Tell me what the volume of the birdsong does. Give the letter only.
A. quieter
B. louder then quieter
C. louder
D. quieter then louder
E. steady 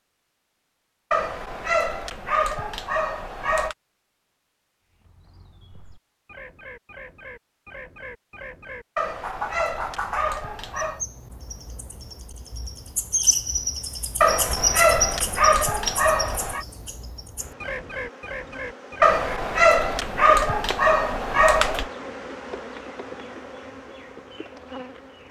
B.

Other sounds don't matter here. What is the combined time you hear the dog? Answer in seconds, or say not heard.
10 s.